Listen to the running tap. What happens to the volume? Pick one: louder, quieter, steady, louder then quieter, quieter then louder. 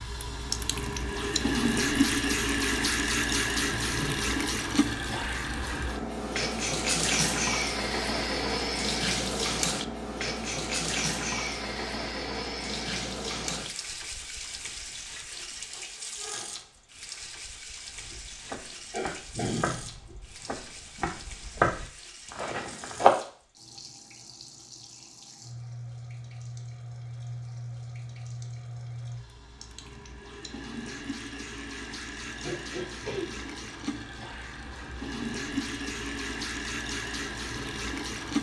quieter then louder.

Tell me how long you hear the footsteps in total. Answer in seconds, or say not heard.
5 s.